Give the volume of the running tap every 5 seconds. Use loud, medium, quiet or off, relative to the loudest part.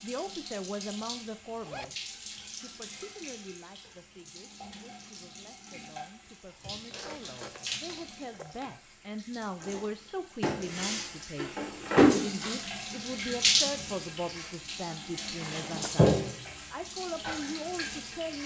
quiet, quiet, loud, loud.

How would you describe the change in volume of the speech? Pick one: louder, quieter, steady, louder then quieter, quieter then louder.
quieter then louder.